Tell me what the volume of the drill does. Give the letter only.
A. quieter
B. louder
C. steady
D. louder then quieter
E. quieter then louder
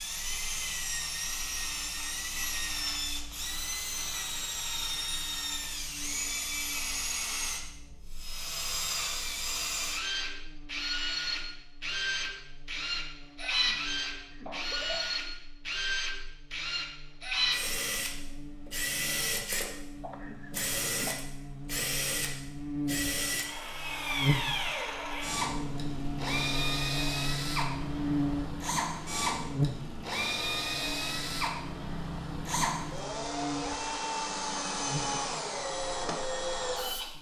C.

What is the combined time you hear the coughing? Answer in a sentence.
You can hear the coughing for 3 seconds altogether.